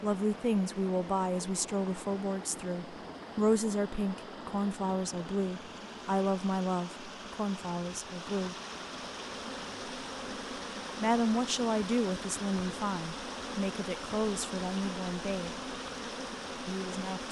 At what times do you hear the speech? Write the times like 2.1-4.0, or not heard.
0.0-8.6, 11.0-15.5, 16.6-17.2.